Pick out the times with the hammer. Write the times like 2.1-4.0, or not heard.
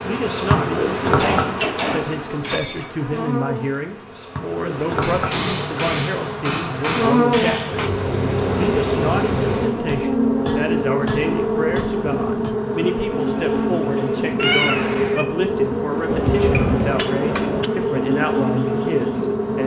1.1-2.9, 5.0-7.9, 9.8-12.6, 16.1-17.7.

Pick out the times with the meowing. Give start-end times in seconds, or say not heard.
14.3-15.2.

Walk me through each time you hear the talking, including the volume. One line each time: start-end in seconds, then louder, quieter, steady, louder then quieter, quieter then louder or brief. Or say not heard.
0.0-19.6 steady.